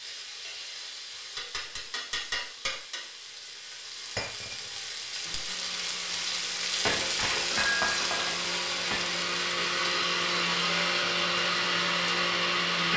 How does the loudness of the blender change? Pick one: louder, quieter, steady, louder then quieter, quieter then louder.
louder.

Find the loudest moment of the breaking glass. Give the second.
8 s.